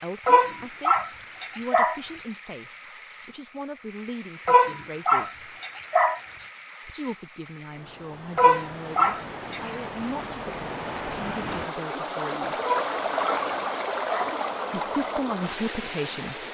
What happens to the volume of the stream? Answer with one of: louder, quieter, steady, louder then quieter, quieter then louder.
louder.